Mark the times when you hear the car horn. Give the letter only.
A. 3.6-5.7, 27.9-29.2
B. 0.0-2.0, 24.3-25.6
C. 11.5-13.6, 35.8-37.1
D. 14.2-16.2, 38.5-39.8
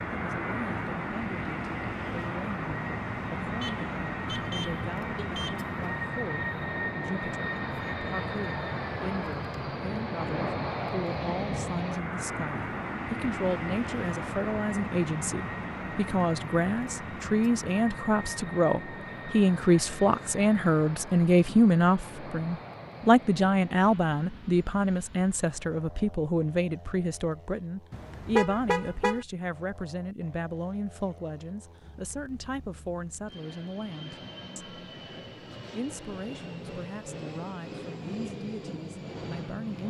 A.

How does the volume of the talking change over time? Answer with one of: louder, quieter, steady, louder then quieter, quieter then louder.
louder then quieter.